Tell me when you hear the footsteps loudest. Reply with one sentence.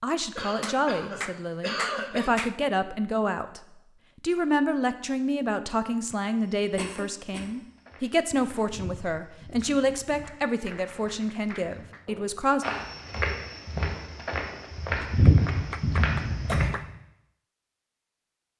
The volume of the footsteps peaks at 15 seconds.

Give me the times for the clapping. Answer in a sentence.
The clapping can be heard from 0.6 to 2.5 s, from 10.2 to 12.1 s and from 15.1 to 16.9 s.